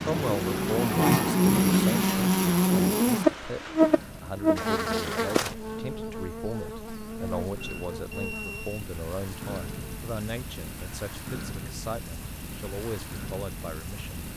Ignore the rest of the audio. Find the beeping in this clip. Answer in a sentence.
You can hear the beeping from 7.6 to 8.9 s.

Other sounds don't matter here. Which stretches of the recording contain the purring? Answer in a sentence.
The purring can't be heard in this clip.